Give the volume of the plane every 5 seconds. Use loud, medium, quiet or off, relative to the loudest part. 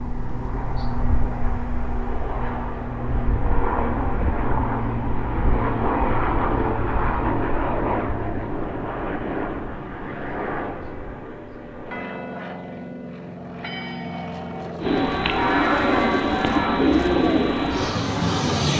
loud, loud, medium, loud.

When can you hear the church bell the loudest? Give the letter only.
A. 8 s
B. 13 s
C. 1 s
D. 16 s
D.